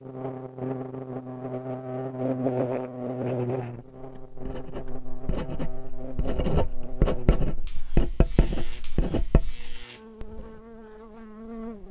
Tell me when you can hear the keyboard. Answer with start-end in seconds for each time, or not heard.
not heard.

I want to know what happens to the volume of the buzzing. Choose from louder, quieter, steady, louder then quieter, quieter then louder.
quieter.